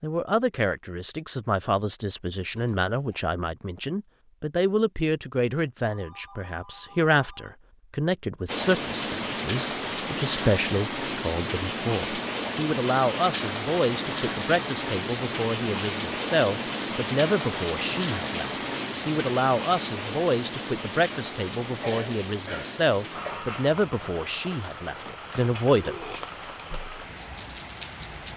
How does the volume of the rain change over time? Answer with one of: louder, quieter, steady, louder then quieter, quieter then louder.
quieter.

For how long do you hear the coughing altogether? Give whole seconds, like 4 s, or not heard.
2 s.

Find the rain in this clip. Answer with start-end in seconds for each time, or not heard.
8.4-28.3.